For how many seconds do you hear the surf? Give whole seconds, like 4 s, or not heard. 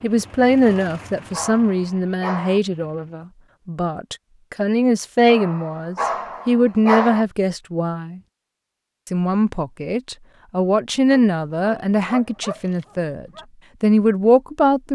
not heard.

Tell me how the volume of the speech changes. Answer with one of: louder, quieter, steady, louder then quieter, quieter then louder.
steady.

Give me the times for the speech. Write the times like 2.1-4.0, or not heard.
0.0-8.2, 9.1-14.9.